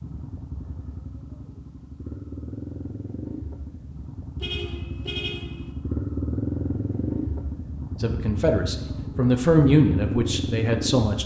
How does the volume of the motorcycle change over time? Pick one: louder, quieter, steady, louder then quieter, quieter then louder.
louder.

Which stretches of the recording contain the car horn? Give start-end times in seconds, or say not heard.
4.4-5.7.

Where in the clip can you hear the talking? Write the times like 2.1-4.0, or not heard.
8.0-11.2.